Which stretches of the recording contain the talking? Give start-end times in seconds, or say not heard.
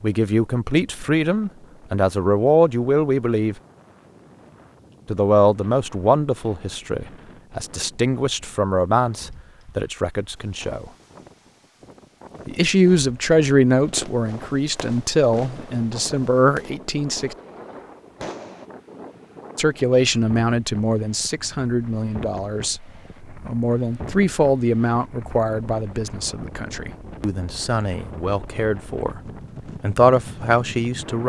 0.0-3.5, 5.0-10.9, 12.4-17.4, 19.6-29.2, 29.8-31.2.